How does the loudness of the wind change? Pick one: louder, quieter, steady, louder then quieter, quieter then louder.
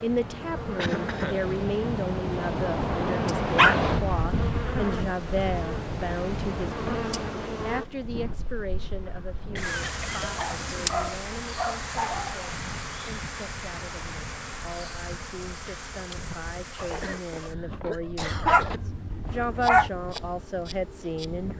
quieter.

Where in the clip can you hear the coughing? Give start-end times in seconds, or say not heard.
0.8-1.5, 9.5-10.7, 16.8-18.8.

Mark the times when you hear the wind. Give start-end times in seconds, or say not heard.
0.0-21.5.